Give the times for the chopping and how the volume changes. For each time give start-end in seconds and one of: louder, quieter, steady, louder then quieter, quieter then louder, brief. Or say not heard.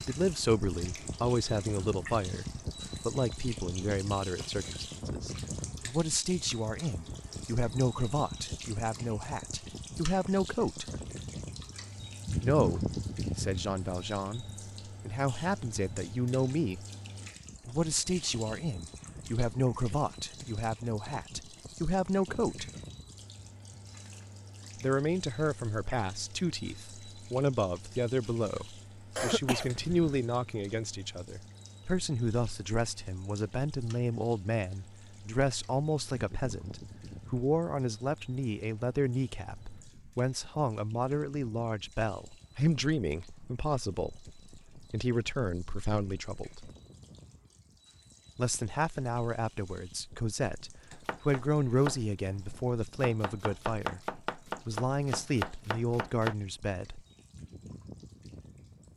50.9-56.4 quieter then louder.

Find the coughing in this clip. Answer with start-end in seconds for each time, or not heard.
29.1-30.2.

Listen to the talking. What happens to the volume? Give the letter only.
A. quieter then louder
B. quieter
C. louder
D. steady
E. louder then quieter
D.